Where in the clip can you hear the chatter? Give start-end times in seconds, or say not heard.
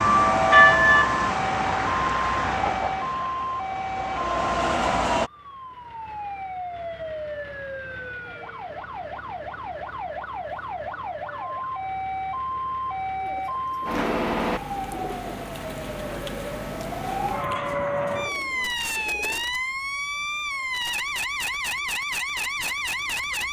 not heard.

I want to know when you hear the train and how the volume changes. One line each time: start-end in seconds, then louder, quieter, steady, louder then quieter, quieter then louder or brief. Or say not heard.
0.0-5.3 quieter then louder.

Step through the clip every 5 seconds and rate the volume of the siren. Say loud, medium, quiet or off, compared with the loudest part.
loud, medium, loud, loud, loud.